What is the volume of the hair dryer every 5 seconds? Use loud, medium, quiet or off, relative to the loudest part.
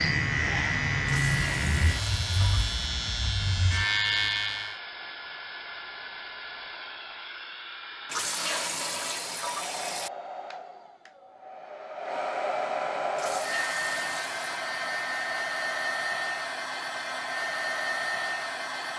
medium, medium, loud, loud.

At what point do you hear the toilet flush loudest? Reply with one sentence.
The volume of the toilet flush peaks at 9 seconds.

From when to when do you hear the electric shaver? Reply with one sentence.
The electric shaver can be heard from 0.0 to 4.8 s.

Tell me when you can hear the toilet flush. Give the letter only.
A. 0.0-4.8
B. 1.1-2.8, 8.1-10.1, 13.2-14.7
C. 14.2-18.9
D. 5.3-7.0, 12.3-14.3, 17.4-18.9
B.